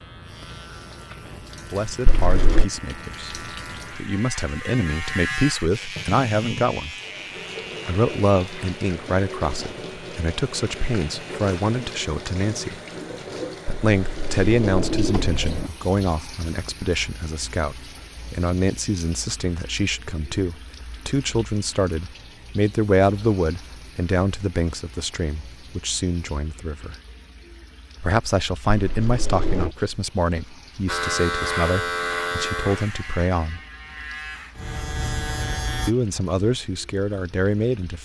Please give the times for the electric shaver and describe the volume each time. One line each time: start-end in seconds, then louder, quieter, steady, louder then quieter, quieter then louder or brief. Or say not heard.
0.0-11.8 louder then quieter
30.9-36.0 quieter then louder.